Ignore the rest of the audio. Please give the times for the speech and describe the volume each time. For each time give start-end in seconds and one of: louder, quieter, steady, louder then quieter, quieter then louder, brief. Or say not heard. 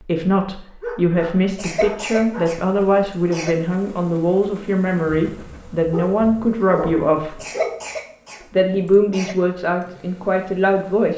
0.0-7.3 steady
8.5-11.1 brief.